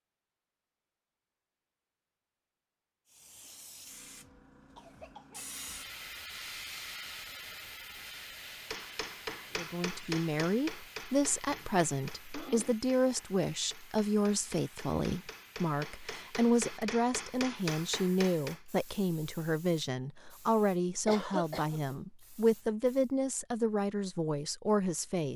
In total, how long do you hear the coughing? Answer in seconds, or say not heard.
3 s.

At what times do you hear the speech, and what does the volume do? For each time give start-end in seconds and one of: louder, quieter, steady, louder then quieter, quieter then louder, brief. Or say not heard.
9.6-25.3 steady.